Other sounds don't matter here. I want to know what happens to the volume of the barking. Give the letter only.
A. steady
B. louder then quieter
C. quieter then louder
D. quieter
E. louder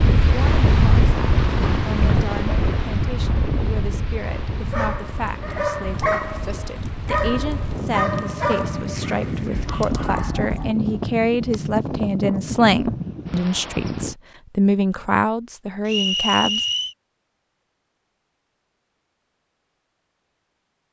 D.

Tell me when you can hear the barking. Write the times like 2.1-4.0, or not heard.
4.7-10.7.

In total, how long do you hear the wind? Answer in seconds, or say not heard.
14 s.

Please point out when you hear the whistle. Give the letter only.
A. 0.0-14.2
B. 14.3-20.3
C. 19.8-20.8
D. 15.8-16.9
D.